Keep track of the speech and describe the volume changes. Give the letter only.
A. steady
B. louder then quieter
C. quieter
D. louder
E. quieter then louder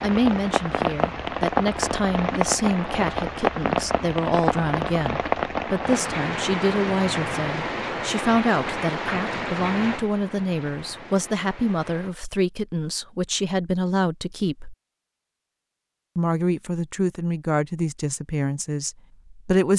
A.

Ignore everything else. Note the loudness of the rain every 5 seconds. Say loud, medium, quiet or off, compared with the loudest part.
loud, loud, quiet, off.